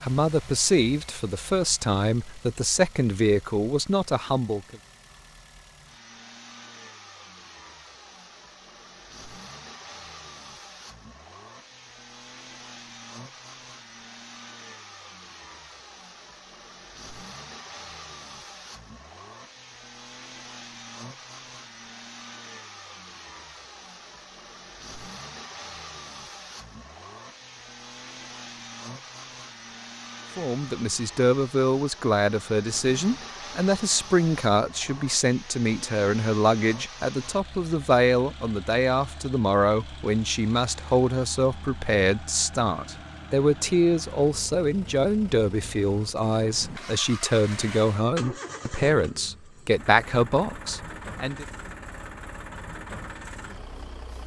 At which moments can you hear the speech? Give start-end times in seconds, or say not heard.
0.0-4.8, 30.4-51.5.